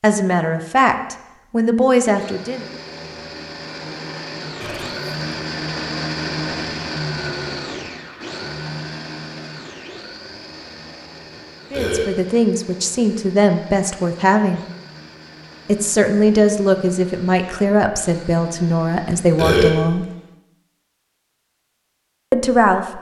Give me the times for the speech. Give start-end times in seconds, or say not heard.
0.0-2.6, 11.7-14.6, 15.7-20.1, 22.3-22.9.